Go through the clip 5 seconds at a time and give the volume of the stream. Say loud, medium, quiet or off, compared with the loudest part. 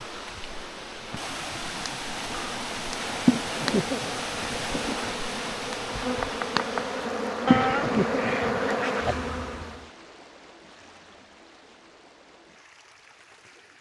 loud, loud, quiet.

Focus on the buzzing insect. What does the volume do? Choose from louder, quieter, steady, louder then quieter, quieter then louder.
louder.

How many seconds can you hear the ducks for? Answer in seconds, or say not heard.
2 s.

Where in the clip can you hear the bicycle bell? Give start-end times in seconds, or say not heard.
not heard.